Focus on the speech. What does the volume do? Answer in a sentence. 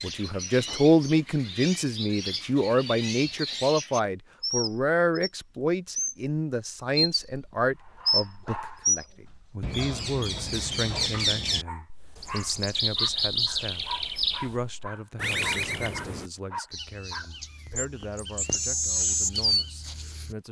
The loudness of the speech goes down.